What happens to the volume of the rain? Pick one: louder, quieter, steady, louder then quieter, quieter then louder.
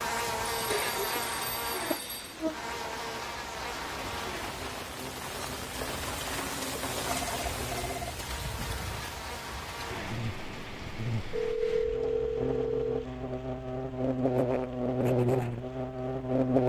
louder then quieter.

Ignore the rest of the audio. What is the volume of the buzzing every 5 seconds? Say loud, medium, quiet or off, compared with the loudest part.
medium, quiet, medium, loud.